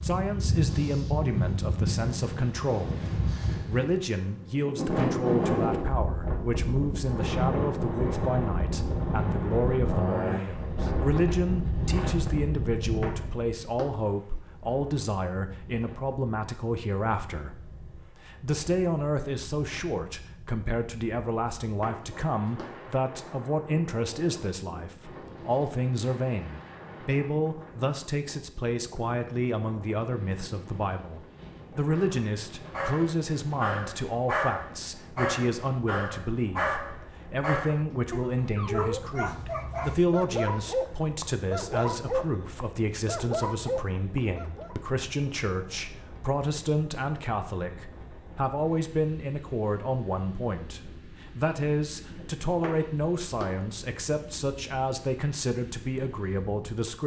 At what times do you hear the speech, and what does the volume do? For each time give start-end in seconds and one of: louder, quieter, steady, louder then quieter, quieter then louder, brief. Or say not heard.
0.0-57.0 steady.